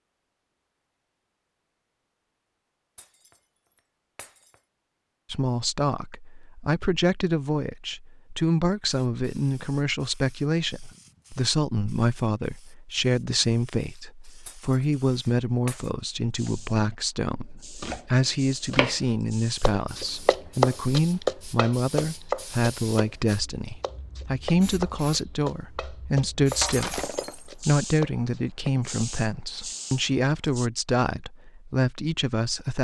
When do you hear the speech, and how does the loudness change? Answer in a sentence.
The speech can be heard from 5.3 to 32.7 s, at a steady volume.